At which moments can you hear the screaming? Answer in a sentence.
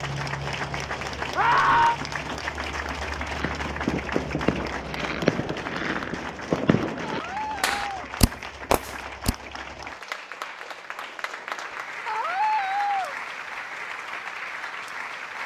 You can hear the screaming from 1.4 to 1.9 s, from 7.0 to 8.1 s and from 12.1 to 13.2 s.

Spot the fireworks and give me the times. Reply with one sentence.
The fireworks can be heard from 3.2 to 9.3 s.